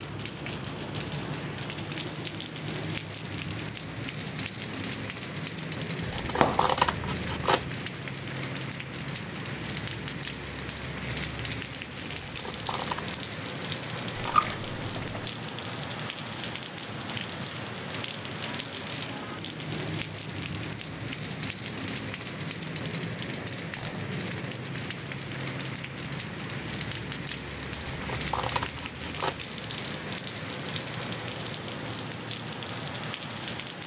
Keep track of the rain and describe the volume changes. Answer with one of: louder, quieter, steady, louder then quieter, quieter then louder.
steady.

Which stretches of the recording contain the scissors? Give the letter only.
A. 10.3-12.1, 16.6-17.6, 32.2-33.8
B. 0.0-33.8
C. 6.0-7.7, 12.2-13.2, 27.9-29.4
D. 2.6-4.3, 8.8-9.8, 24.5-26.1
C.